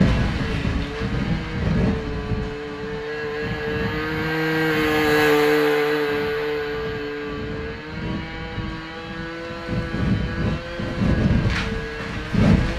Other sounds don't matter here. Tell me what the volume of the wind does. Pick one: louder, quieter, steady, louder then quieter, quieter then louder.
quieter then louder.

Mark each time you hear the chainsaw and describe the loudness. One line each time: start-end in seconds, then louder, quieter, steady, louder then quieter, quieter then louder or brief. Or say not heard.
0.0-12.7 louder then quieter.